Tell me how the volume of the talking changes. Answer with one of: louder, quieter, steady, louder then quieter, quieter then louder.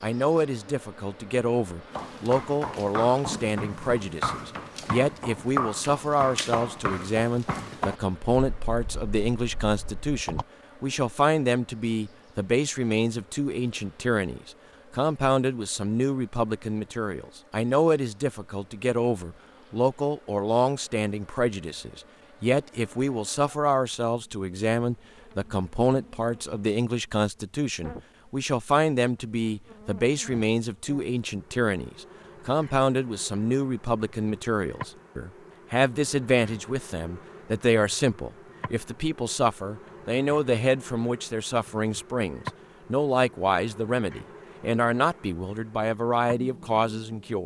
steady.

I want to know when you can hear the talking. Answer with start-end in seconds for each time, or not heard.
0.0-47.4.